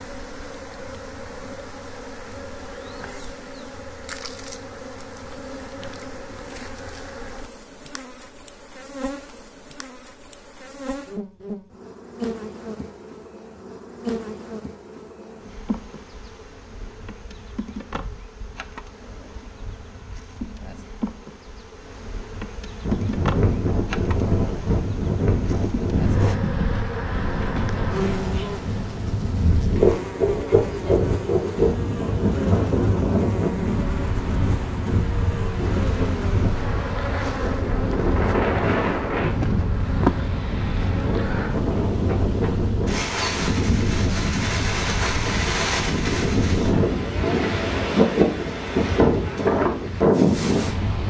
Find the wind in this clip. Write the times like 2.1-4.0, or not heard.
22.8-51.0.